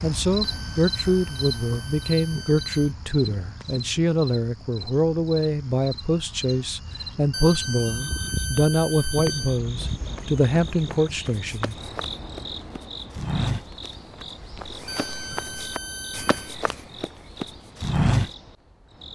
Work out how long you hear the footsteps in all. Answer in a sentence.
The footsteps can be heard for 9 seconds in total.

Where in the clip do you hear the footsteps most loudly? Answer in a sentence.
The loudest moment of the footsteps is at 18 seconds.